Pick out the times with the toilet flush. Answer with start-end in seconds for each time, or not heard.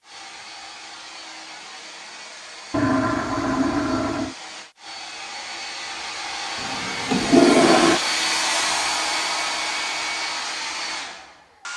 2.7-4.3, 6.6-8.0.